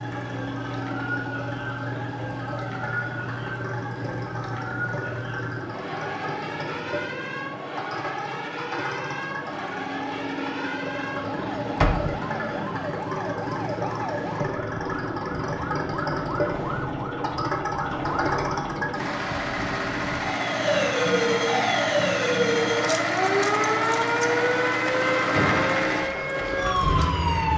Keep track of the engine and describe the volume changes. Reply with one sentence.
The volume of the engine goes up.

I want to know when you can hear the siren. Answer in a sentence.
You can hear the siren from 0.0 to 27.5 s.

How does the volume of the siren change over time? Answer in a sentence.
The volume of the siren goes up.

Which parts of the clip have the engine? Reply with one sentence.
You can hear the engine from 0.0 to 27.5 s.